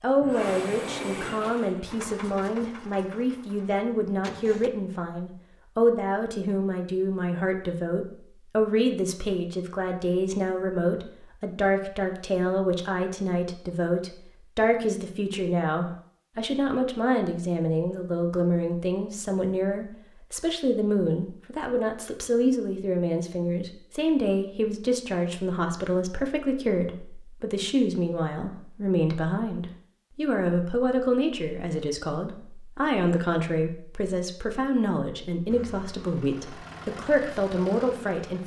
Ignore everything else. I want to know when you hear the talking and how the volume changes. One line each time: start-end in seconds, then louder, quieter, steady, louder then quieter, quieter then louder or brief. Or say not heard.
0.0-38.4 steady.